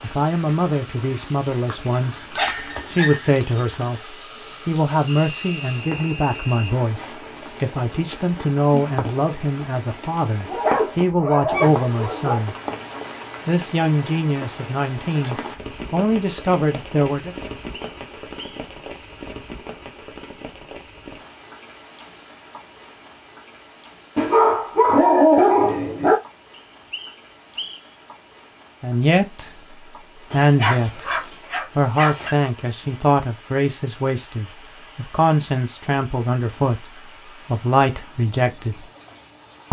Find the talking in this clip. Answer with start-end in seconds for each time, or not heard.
0.0-2.2, 2.9-12.6, 13.4-17.4, 28.8-38.9.